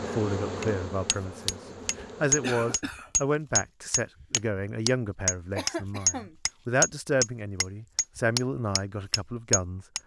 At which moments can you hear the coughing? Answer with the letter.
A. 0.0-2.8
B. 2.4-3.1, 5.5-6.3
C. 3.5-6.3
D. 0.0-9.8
B.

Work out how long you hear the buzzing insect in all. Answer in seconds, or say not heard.
3 s.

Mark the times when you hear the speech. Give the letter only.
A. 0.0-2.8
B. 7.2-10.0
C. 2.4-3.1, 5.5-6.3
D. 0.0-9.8
D.